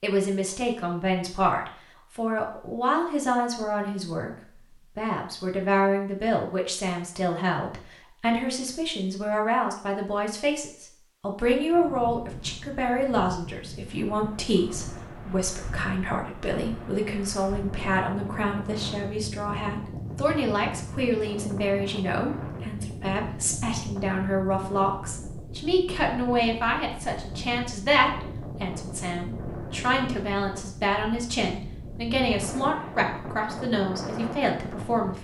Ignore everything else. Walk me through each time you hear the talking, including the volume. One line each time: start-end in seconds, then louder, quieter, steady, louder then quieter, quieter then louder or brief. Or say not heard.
0.0-35.1 steady.